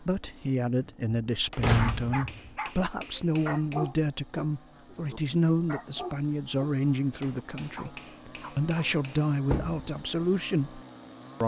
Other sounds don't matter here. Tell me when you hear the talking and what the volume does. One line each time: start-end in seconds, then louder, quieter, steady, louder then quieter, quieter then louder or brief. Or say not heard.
0.0-10.8 steady.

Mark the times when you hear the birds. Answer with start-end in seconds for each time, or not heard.
not heard.